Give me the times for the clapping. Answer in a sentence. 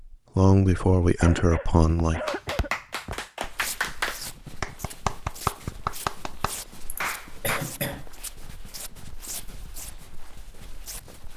You can hear the clapping from 2.2 to 7.6 s.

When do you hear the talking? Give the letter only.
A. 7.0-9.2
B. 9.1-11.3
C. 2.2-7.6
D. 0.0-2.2
D.